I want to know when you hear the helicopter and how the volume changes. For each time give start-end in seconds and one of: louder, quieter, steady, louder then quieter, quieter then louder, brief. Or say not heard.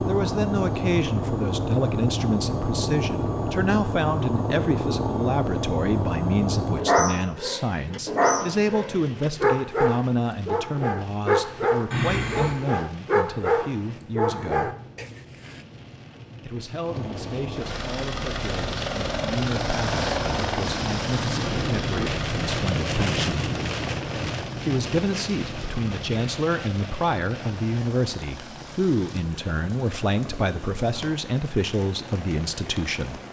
0.0-6.8 steady
16.9-33.2 quieter.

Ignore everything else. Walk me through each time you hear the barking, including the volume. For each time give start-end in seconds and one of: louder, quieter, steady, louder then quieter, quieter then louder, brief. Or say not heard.
6.8-15.6 steady.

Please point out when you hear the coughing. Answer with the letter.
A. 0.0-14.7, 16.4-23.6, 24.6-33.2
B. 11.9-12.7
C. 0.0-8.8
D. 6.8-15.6
B.